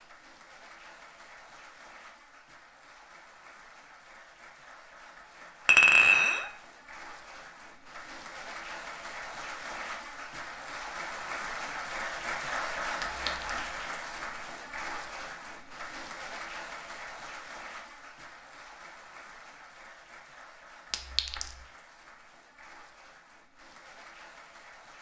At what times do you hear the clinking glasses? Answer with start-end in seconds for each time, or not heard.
5.7-6.5, 13.0-13.6, 20.9-21.6.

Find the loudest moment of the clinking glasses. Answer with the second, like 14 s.
6 s.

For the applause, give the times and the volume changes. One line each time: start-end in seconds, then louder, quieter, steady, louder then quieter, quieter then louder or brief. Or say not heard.
0.0-24.9 louder then quieter.